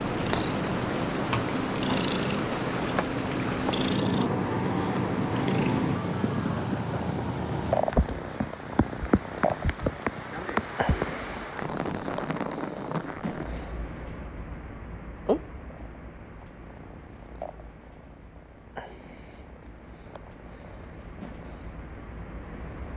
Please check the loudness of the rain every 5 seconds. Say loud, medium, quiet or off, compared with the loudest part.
loud, loud, loud, quiet, quiet.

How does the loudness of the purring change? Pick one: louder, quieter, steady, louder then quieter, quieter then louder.
quieter.